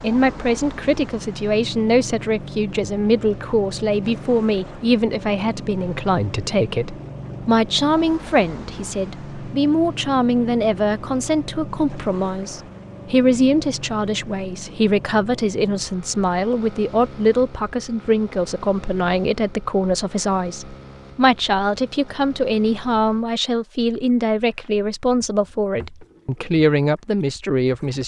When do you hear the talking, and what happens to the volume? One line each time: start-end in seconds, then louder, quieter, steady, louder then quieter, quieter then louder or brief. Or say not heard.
0.0-28.0 steady.